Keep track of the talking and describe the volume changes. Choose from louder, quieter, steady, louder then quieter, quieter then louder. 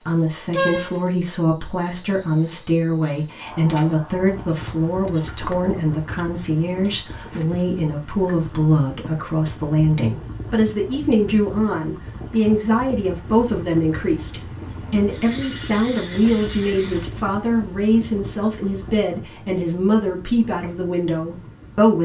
steady.